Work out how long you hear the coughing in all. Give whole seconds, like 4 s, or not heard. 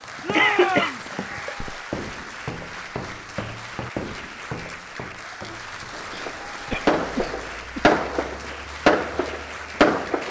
4 s.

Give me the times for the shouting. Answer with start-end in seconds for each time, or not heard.
0.2-1.1.